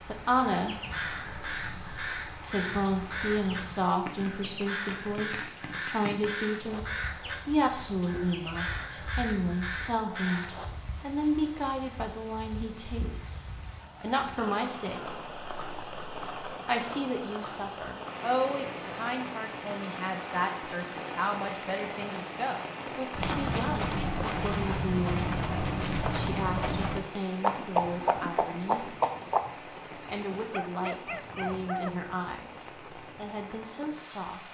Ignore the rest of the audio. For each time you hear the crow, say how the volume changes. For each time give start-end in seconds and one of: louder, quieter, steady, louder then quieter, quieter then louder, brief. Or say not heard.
0.5-10.7 steady.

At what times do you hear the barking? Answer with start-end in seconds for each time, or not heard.
30.5-32.1.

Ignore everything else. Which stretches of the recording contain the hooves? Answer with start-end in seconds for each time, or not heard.
23.1-29.4.